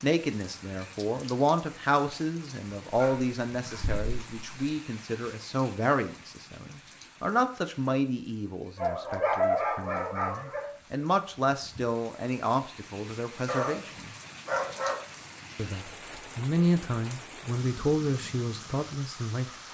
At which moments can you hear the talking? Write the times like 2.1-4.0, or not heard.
0.0-14.1, 15.6-19.6.